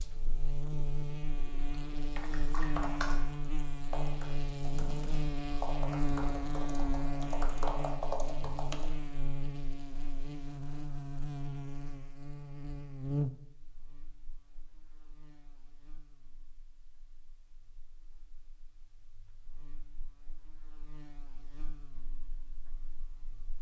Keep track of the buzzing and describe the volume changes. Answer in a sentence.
The loudness of the buzzing goes down, then up.